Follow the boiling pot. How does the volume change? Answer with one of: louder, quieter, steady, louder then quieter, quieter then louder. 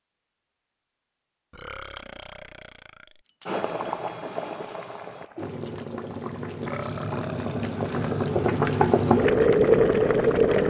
louder.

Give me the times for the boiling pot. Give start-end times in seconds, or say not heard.
3.5-10.6.